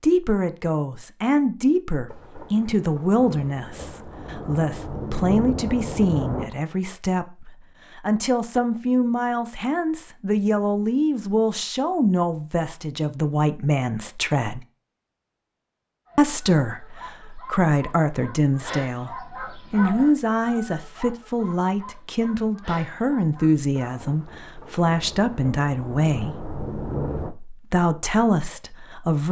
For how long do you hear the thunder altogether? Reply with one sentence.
The thunder can be heard for 8 seconds in total.